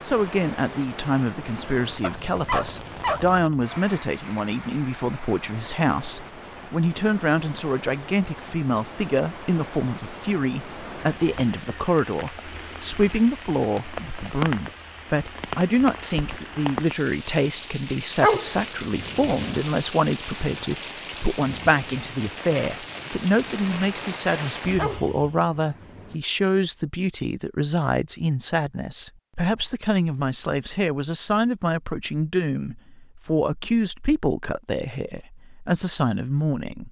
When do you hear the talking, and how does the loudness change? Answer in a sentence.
The talking can be heard from 0.0 to 36.8 s, at a steady volume.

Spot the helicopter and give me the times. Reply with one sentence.
You can't hear the helicopter here.